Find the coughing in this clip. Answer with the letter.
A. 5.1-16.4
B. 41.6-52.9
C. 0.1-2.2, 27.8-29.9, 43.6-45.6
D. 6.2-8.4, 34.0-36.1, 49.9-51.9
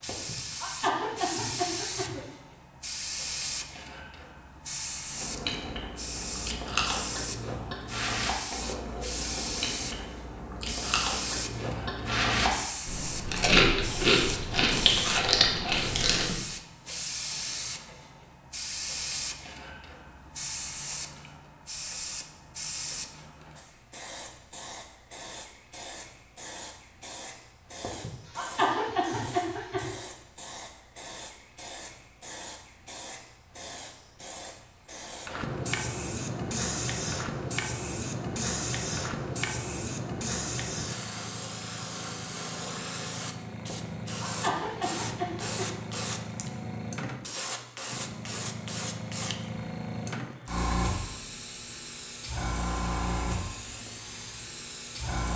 C.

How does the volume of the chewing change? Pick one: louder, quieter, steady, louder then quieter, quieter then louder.
louder.